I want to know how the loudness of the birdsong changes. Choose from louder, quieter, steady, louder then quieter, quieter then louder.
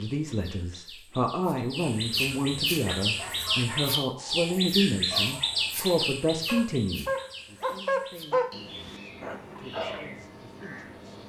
louder then quieter.